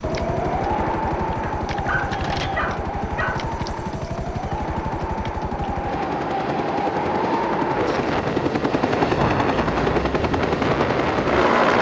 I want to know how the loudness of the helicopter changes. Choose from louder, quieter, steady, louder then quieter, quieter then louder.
louder.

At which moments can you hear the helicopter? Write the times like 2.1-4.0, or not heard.
0.0-11.7.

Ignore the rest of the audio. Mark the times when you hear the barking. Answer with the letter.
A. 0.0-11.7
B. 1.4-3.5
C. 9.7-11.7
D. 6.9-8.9
B.